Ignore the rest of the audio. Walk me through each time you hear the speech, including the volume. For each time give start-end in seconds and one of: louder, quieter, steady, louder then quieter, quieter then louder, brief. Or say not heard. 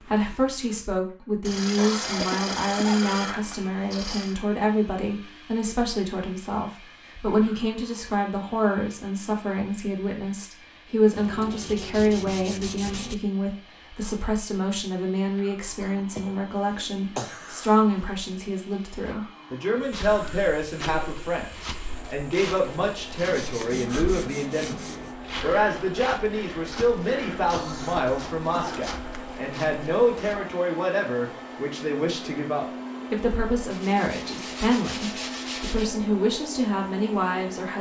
0.0-37.7 steady.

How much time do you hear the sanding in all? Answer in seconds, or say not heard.
9 s.